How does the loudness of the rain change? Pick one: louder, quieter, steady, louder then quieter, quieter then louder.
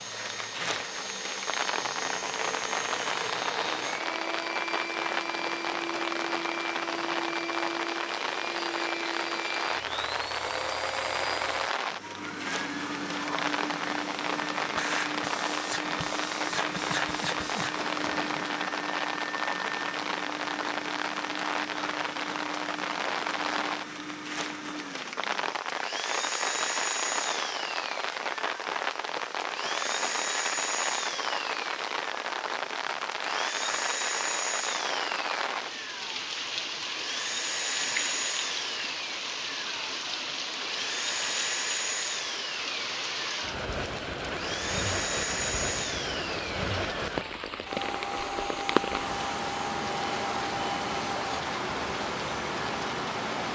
steady.